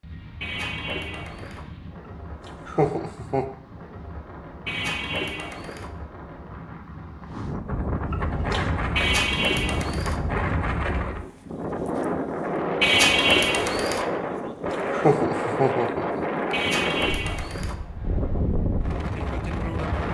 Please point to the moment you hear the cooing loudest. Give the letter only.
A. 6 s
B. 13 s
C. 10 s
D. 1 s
B.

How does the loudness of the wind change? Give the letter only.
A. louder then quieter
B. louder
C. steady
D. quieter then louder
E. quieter
B.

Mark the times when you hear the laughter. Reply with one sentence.
The laughter can be heard from 2.5 to 3.5 s, from 8.1 to 8.7 s and from 14.7 to 16.2 s.